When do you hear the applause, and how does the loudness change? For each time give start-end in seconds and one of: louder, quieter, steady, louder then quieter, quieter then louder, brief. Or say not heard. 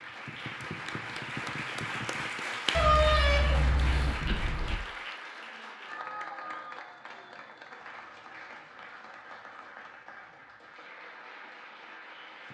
0.0-12.5 quieter.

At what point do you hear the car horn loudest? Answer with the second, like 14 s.
3 s.